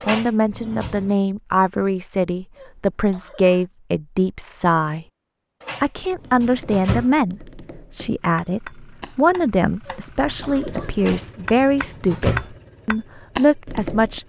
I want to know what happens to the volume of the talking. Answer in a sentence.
The loudness of the talking stays about the same.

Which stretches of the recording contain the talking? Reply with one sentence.
You can hear the talking from 0.1 to 5.0 s and from 5.8 to 14.2 s.